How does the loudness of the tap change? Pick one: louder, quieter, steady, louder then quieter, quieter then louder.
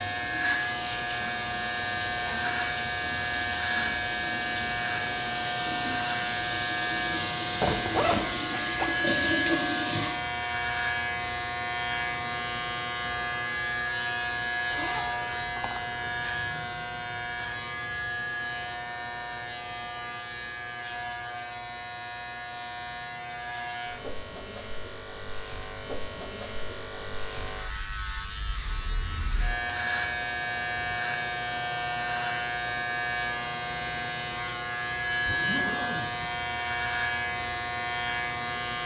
louder.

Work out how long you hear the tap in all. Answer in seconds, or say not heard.
10 s.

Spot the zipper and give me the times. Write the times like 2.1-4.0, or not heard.
7.6-8.9, 14.7-16.1, 35.2-36.3.